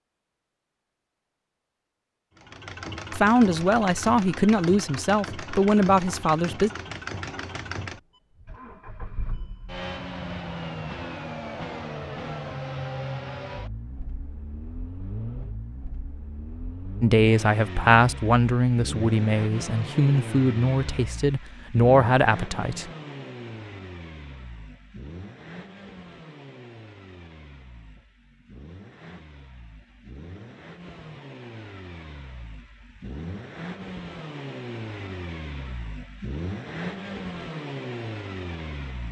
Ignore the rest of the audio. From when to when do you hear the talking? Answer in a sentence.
You can hear the talking from 3.1 to 6.7 s and from 17.0 to 22.9 s.